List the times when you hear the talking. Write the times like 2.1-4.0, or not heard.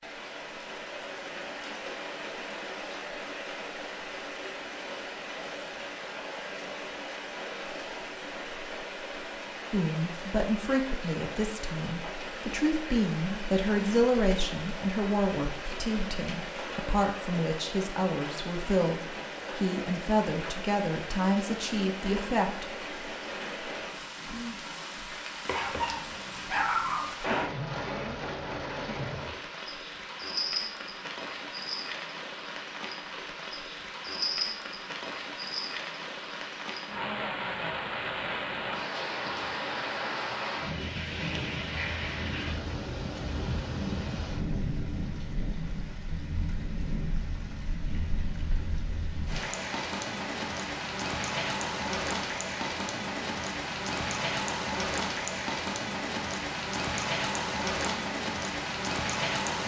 9.7-22.6.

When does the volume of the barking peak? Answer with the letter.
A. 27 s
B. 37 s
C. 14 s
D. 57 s
A.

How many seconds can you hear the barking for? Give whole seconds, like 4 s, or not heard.
2 s.